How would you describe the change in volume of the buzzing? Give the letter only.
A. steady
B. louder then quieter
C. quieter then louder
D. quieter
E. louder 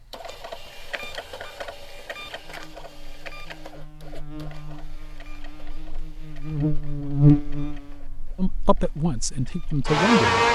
B.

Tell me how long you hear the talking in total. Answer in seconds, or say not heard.
2 s.